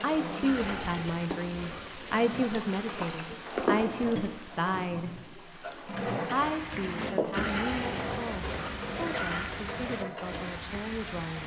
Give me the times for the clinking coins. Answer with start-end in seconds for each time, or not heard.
0.5-2.2, 7.3-9.5.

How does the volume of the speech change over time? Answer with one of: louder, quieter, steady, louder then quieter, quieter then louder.
quieter.